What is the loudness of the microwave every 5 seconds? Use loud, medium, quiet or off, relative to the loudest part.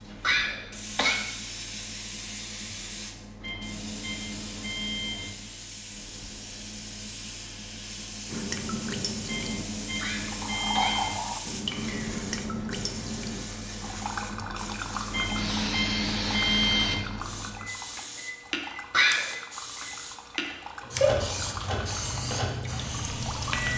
medium, medium, medium, loud, loud.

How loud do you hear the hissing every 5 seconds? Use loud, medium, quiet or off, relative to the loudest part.
medium, medium, medium, loud, loud.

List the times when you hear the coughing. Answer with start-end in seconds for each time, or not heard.
0.2-1.2, 10.0-11.2, 18.9-19.4.